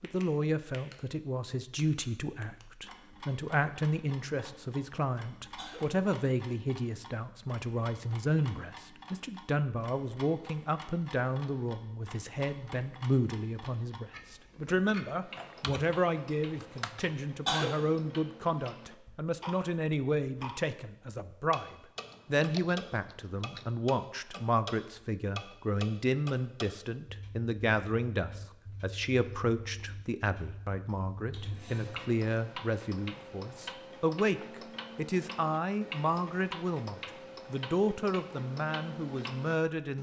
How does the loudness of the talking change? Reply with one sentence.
The volume of the talking stays about the same.